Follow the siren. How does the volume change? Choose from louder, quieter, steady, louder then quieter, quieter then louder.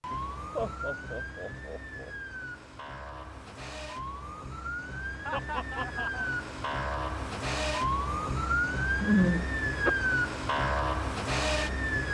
louder.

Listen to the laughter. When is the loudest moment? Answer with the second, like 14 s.
9 s.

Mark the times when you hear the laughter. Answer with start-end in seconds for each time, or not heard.
0.6-2.1, 5.2-6.3, 9.0-9.9.